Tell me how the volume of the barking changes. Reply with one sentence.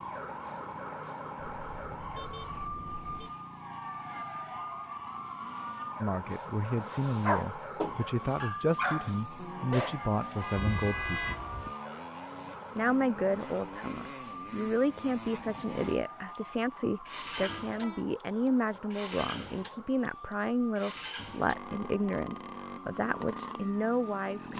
The loudness of the barking goes down.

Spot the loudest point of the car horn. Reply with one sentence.
The loudest moment of the car horn is at 11 seconds.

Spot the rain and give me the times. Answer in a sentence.
The rain can't be heard in this clip.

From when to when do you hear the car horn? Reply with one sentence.
You can hear the car horn from 1.6 to 3.4 s, from 10.4 to 11.4 s and from 17.4 to 18.1 s.